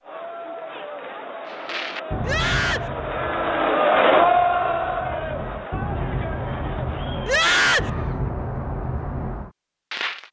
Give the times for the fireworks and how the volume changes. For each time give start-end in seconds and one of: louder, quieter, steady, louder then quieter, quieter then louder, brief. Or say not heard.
1.4-10.2 quieter then louder.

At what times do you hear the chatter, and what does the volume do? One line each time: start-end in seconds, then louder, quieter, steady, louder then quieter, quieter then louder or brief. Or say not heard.
0.0-8.3 louder then quieter.